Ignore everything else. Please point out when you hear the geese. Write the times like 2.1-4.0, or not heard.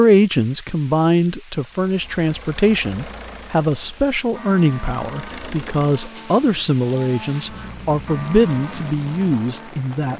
not heard.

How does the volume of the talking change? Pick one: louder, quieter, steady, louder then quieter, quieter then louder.
steady.